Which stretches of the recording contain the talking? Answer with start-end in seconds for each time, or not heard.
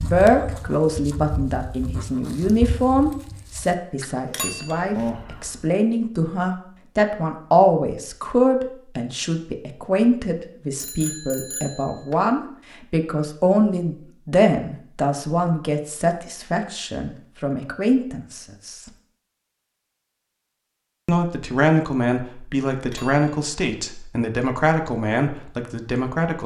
0.0-18.8, 21.1-26.4.